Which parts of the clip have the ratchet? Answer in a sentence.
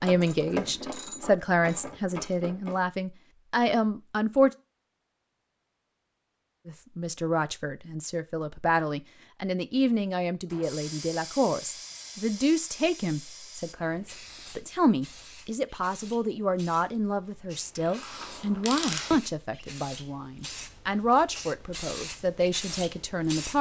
The ratchet can be heard from 0.0 to 2.9 s and from 17.8 to 19.1 s.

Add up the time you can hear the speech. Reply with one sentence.
You can hear the speech for 21 seconds altogether.